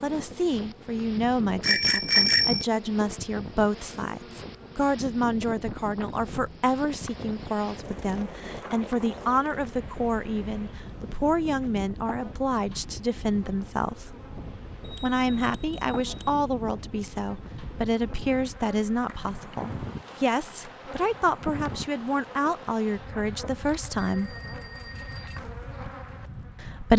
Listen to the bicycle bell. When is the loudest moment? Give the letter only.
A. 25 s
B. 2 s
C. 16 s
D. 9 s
B.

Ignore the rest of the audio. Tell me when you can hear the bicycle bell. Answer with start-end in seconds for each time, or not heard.
1.6-2.6, 14.8-16.4, 23.9-25.4.